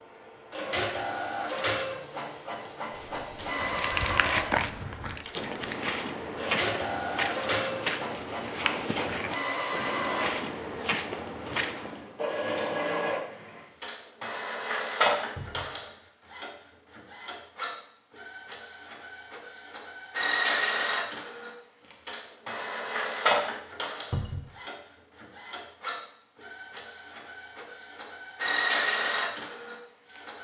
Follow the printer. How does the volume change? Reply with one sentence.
The loudness of the printer stays about the same.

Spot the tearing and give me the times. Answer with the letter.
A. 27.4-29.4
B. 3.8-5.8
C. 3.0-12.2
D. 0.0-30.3
B.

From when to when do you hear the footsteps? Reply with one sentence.
The footsteps can be heard from 3.0 to 12.2 s.